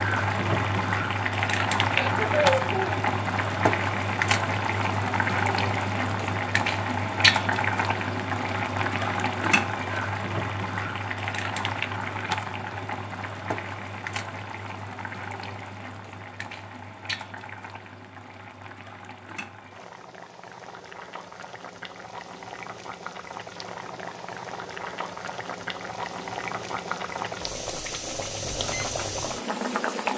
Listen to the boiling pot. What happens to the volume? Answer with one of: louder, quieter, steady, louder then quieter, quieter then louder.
quieter then louder.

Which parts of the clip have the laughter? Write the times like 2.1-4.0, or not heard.
1.9-3.0.